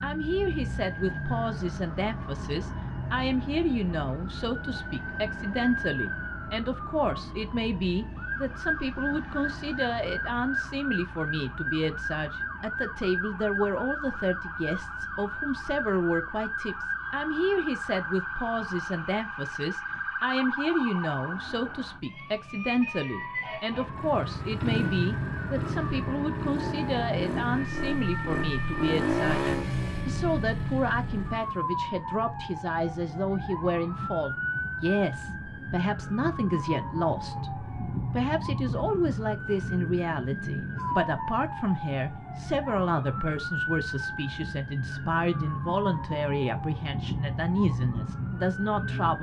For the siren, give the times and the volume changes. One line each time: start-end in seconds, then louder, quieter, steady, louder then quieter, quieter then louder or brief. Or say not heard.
0.0-49.1 steady.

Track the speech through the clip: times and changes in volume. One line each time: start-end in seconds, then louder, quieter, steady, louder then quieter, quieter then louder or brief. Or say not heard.
0.0-49.1 steady.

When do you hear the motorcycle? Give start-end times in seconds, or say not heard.
23.9-31.6.